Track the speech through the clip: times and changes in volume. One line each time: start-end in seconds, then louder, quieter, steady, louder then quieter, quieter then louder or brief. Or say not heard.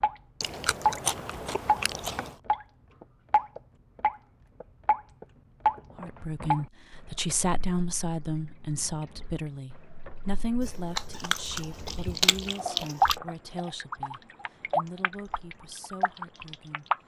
6.0-16.9 quieter.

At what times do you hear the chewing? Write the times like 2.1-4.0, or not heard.
0.4-2.4, 10.6-13.2.